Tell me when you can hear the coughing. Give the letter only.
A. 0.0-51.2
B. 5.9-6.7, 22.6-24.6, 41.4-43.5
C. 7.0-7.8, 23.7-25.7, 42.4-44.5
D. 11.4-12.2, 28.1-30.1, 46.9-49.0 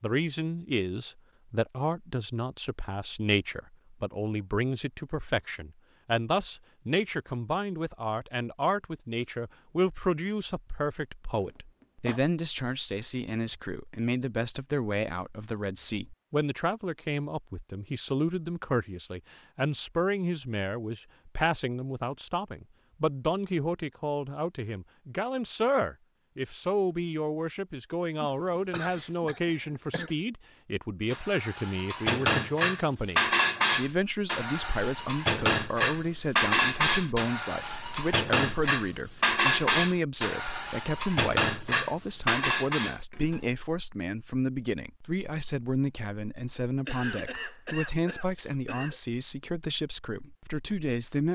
D.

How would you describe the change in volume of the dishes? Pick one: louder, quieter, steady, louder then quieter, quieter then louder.
steady.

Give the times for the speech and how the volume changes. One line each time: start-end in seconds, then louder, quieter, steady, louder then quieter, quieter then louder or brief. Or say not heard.
0.0-51.2 steady.